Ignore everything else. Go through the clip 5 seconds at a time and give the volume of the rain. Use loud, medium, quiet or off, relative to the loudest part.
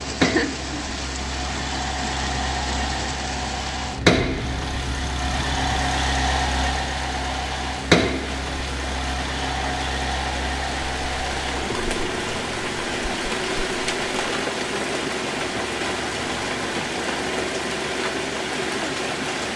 loud, medium, loud, loud.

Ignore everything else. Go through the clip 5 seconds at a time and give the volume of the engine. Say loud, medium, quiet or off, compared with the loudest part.
loud, loud, medium, medium.